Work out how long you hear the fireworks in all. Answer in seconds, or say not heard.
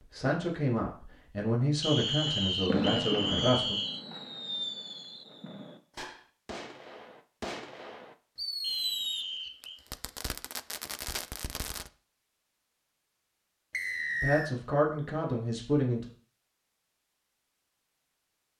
10 s.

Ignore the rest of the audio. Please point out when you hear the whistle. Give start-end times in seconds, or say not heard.
1.8-4.0, 8.6-9.8, 13.7-14.6.